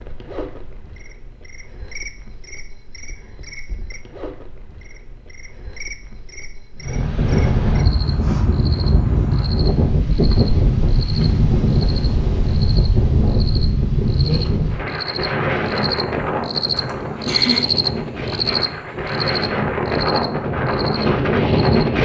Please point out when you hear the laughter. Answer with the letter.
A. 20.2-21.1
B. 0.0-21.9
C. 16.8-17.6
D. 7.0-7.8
C.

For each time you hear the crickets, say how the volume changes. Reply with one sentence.
You can hear the crickets from 0.0 to 21.9 s, getting louder.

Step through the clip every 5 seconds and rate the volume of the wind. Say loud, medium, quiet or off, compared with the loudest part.
off, loud, loud, medium, loud.